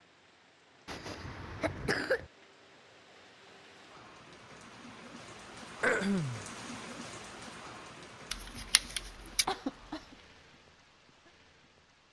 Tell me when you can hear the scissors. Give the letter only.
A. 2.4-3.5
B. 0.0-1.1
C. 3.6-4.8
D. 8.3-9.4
D.